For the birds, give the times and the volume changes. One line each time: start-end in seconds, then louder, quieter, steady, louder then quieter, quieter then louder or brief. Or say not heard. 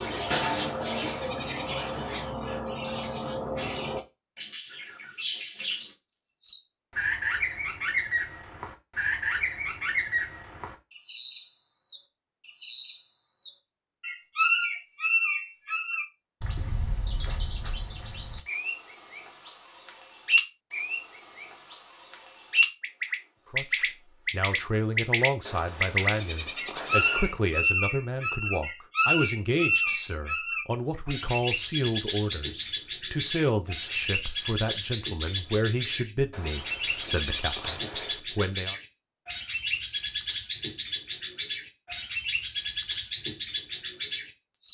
0.0-44.6 steady.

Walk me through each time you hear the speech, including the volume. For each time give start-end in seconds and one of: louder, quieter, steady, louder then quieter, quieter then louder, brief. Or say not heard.
23.5-38.8 steady.